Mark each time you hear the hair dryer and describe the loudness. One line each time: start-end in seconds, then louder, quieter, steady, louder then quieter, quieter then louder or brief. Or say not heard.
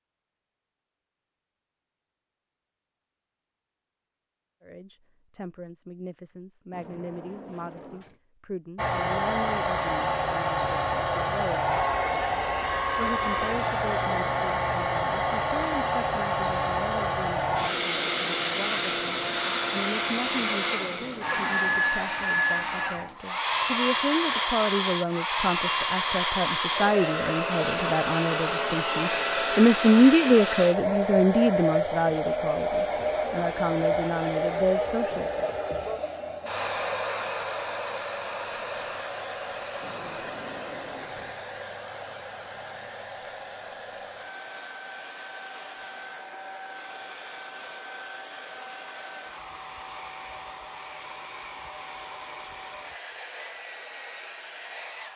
8.8-55.1 quieter.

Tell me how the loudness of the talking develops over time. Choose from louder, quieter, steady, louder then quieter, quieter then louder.
louder.